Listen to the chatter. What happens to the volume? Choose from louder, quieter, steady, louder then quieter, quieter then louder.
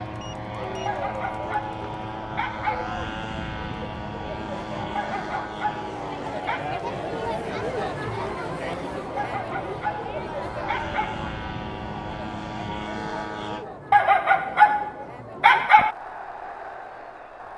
louder then quieter.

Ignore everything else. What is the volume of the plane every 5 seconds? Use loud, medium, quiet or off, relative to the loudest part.
loud, loud, loud, off.